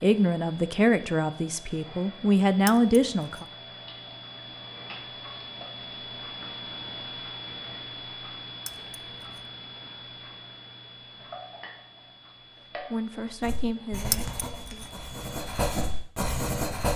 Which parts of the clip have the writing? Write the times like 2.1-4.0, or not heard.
13.4-16.9.